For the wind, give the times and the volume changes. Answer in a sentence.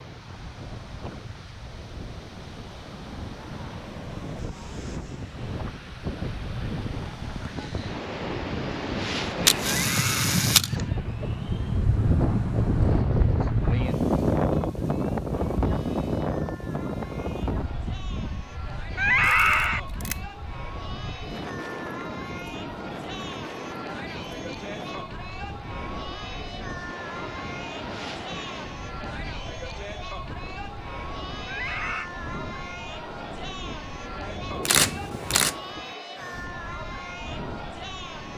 The wind can be heard from 0.0 to 38.3 s, getting louder then quieter.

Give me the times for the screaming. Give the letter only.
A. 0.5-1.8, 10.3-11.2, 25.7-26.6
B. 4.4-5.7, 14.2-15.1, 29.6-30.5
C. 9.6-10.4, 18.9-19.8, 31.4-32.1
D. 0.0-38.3
C.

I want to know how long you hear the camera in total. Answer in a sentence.
The camera can be heard for 3 seconds in total.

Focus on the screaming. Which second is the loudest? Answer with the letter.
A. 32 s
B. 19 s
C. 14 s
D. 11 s
B.